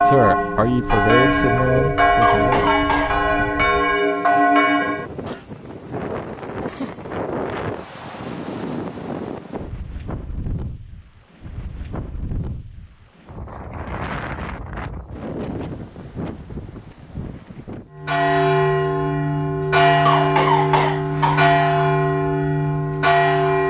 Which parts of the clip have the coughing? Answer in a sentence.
You can hear the coughing from 2.2 to 3.2 s and from 20.1 to 21.5 s.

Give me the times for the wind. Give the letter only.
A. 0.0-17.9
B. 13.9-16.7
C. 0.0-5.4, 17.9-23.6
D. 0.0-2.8
A.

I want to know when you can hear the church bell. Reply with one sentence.
The church bell can be heard from 0.0 to 5.4 s and from 17.9 to 23.6 s.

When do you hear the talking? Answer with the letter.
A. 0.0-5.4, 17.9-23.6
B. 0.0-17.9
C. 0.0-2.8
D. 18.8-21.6
C.